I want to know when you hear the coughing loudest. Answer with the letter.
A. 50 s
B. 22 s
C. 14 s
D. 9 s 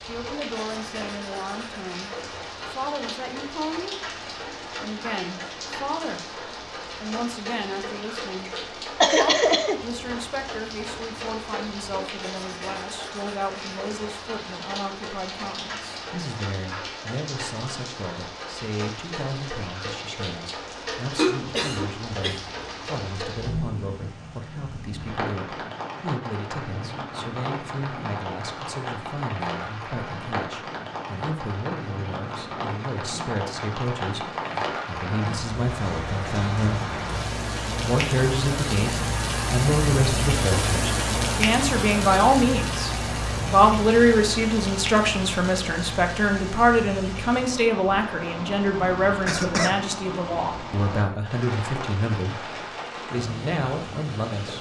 D.